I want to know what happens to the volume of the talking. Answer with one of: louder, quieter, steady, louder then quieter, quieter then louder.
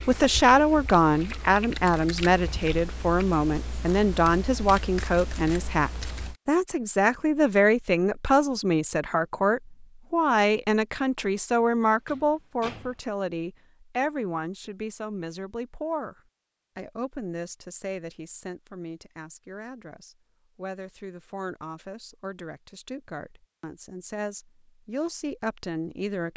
quieter.